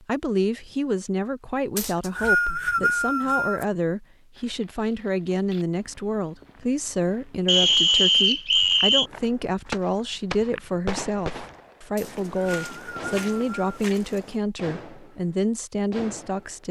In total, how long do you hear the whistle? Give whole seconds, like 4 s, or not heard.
5 s.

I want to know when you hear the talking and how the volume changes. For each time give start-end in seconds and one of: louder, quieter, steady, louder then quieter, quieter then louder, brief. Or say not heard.
0.0-16.6 steady.